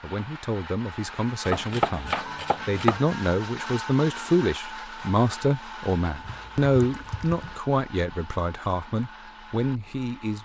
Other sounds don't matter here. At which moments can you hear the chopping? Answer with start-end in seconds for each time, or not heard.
1.4-3.0.